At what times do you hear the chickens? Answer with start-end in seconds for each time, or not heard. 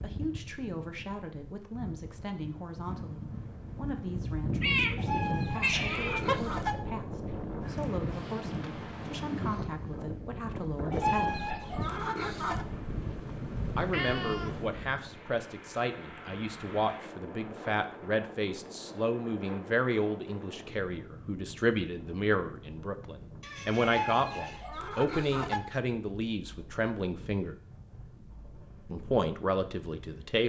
5.0-6.8, 10.9-12.7, 23.8-25.6.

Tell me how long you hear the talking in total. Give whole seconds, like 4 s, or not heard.
27 s.